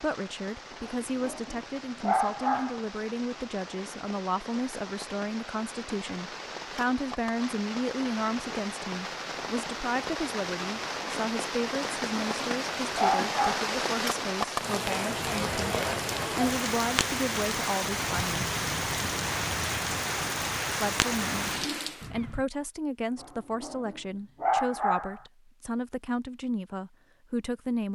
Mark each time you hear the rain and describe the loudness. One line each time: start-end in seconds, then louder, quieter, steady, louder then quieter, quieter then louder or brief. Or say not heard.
0.0-22.1 louder.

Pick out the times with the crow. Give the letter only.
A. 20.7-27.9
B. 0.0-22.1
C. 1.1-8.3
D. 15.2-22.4
D.